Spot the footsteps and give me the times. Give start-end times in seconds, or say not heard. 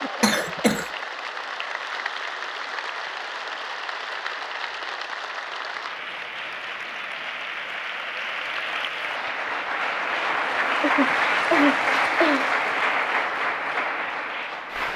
not heard.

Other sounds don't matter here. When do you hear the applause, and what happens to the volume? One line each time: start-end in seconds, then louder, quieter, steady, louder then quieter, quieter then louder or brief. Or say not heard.
0.0-14.9 louder.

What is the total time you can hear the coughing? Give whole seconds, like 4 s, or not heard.
2 s.